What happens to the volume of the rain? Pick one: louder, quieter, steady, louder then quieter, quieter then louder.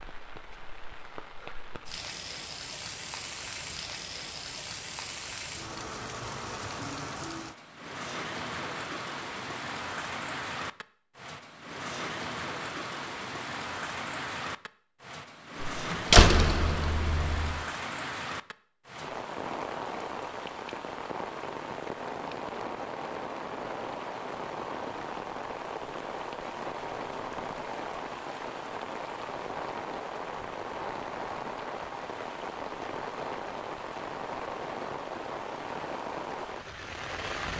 steady.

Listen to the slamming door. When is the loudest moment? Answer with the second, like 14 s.
16 s.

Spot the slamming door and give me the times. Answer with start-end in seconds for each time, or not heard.
15.6-17.6.